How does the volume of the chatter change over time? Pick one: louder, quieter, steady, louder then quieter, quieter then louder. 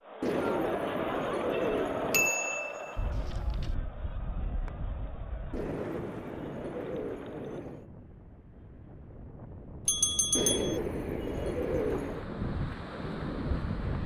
quieter.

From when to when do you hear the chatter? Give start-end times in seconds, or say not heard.
0.0-7.7.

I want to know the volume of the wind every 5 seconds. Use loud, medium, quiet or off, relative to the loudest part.
medium, medium, loud.